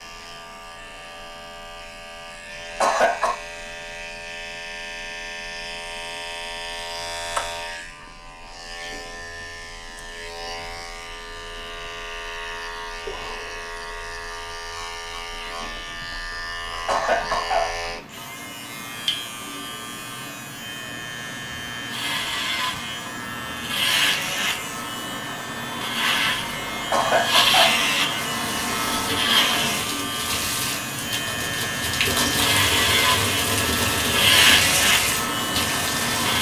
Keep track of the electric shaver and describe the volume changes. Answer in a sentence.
The volume of the electric shaver goes up.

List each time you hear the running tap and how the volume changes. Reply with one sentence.
You can hear the running tap from 28.4 to 36.3 s, getting louder.